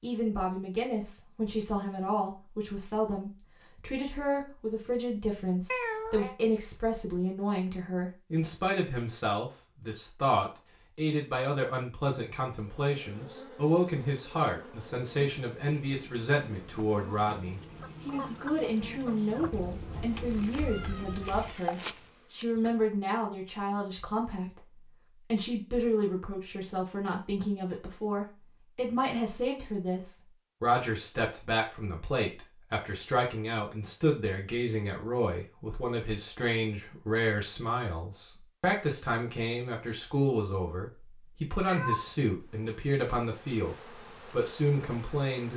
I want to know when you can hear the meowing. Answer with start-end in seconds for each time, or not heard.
5.7-6.3, 19.5-21.6, 41.6-42.1.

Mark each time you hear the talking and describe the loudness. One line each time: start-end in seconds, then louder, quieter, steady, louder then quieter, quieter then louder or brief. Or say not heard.
0.0-45.5 steady.